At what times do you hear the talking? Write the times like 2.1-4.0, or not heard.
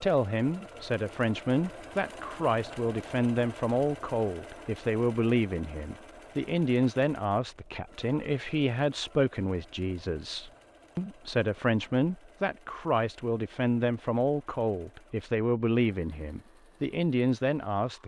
0.0-18.0.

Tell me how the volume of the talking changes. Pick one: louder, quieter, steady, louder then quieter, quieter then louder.
steady.